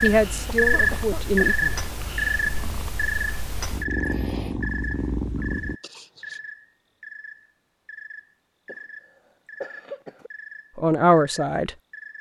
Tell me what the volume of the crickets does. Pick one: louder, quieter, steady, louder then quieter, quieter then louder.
quieter.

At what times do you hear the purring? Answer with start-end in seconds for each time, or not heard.
0.0-5.8.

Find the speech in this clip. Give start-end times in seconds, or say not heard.
0.0-1.6, 10.8-11.7.